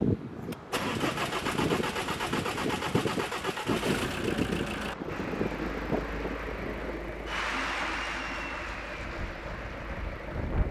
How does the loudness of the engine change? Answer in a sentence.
The loudness of the engine goes down.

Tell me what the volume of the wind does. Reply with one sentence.
The loudness of the wind goes down.